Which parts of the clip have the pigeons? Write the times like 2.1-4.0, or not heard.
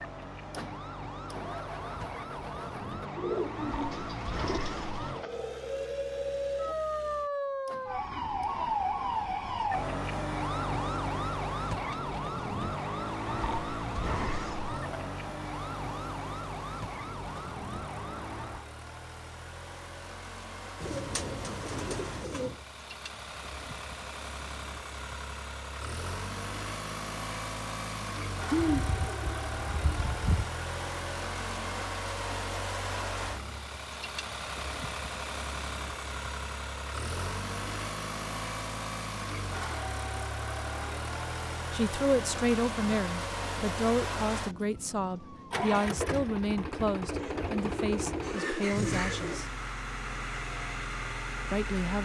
3.1-4.8, 20.8-22.6, 28.5-30.4, 47.1-49.5.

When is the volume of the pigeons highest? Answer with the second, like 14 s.
29 s.